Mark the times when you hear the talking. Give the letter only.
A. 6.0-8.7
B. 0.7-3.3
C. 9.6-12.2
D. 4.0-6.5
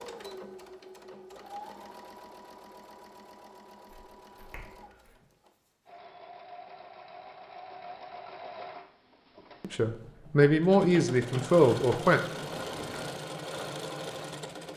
C.